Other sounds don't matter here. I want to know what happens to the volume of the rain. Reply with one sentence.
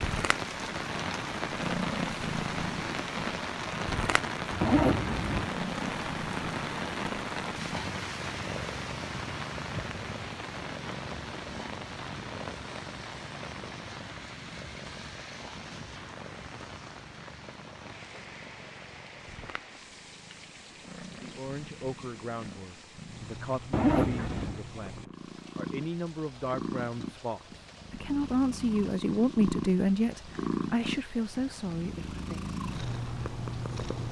The volume of the rain goes down.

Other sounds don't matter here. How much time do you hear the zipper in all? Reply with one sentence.
You can hear the zipper for 2 seconds altogether.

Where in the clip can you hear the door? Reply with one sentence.
The door can't be heard in this clip.